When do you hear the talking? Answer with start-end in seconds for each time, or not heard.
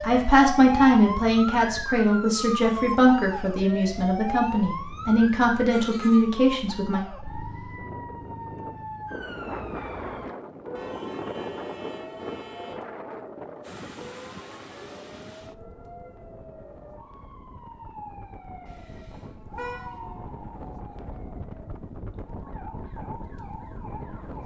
0.0-7.0.